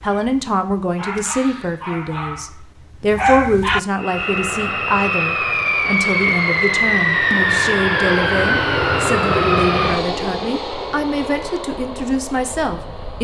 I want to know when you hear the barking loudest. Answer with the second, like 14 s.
3 s.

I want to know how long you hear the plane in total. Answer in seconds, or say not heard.
9 s.